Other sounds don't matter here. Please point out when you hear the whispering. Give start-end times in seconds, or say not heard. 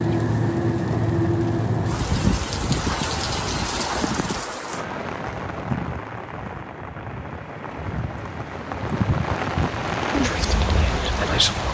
10.2-11.6.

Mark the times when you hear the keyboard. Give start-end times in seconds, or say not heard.
not heard.